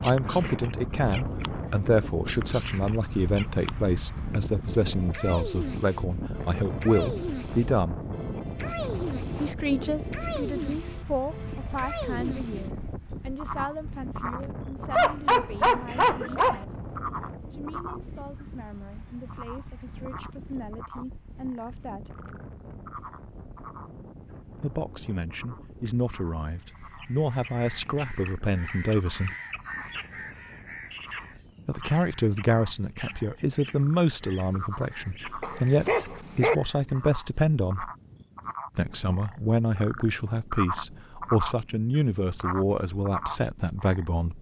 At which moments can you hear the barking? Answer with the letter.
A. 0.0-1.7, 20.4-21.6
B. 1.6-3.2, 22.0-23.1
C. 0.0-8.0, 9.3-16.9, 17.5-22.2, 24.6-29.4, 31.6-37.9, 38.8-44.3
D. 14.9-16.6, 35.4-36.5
D.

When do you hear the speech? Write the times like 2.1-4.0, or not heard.
0.0-8.0, 9.3-16.9, 17.5-22.2, 24.6-29.4, 31.6-37.9, 38.8-44.3.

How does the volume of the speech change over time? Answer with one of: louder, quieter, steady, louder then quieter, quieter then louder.
quieter then louder.